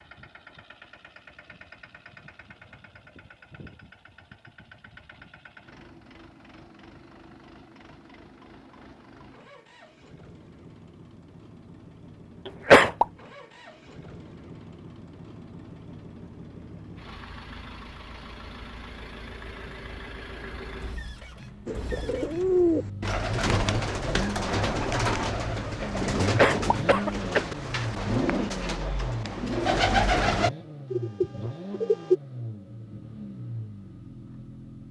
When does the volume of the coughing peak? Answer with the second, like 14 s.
13 s.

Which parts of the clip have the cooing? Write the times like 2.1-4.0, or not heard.
21.6-32.1.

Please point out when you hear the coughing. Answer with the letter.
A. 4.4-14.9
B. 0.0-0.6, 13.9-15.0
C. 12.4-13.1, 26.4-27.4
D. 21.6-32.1
C.